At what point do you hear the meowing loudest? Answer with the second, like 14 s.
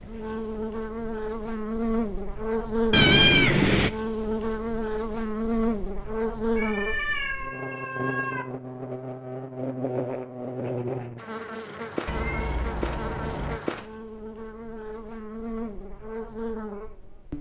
3 s.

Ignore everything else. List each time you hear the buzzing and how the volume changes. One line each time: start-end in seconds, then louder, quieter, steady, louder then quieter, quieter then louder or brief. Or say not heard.
0.0-17.3 quieter.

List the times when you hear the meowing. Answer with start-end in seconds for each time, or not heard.
2.9-3.9, 6.5-8.4, 12.1-13.6.